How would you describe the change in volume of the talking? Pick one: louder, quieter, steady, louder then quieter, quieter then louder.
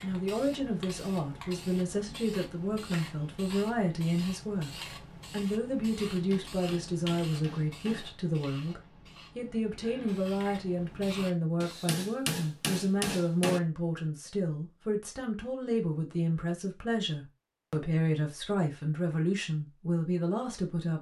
steady.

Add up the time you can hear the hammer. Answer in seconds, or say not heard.
4 s.